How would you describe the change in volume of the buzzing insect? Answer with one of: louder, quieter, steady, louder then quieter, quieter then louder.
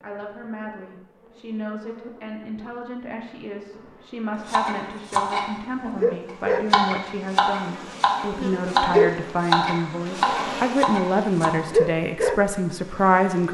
louder.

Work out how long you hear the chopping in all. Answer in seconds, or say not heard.
7 s.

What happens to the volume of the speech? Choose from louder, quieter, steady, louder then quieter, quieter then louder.
louder.